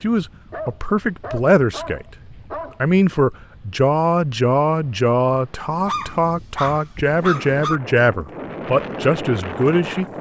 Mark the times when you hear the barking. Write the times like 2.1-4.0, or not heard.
0.5-2.8, 5.8-7.8.